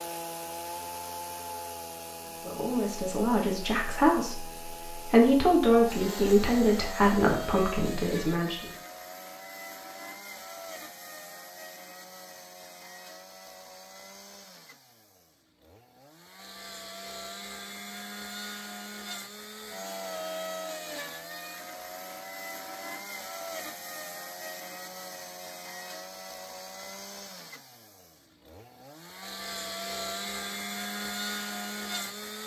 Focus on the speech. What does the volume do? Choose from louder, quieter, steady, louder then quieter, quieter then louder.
louder then quieter.